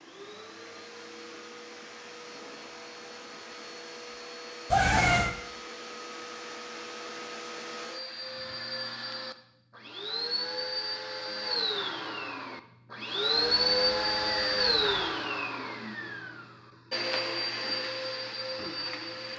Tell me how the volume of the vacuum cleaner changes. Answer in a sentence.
The volume of the vacuum cleaner goes up, then down.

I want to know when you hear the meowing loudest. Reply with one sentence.
The volume of the meowing peaks at 5 seconds.